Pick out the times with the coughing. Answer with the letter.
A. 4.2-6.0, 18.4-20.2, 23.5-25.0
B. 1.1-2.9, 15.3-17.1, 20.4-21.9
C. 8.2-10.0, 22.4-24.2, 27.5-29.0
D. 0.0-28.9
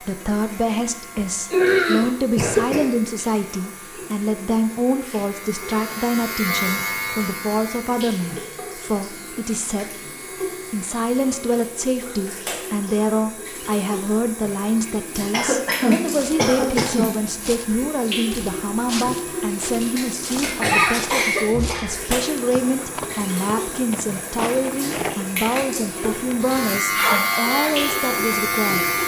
B.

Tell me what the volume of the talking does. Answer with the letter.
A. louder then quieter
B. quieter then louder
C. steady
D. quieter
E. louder
C.